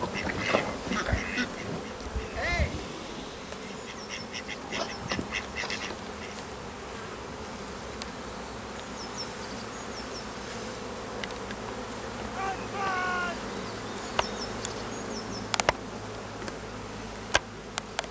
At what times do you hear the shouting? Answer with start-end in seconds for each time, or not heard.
2.4-2.8, 12.3-13.4.